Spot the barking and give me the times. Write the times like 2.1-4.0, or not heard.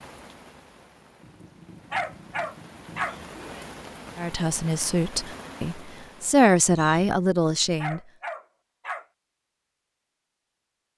1.9-3.1, 7.8-9.1.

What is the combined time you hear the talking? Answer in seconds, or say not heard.
4 s.